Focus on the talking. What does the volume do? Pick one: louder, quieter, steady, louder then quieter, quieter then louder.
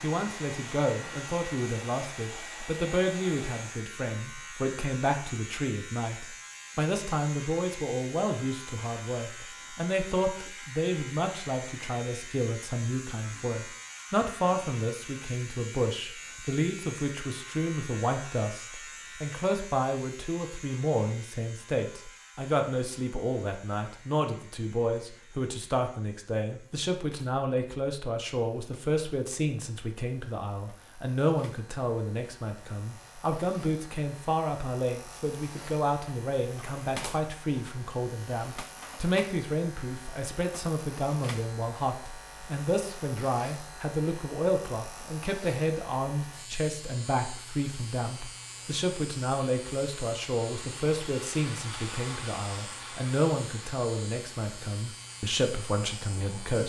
steady.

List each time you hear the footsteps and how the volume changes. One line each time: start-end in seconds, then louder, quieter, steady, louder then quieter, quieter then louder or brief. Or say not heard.
not heard.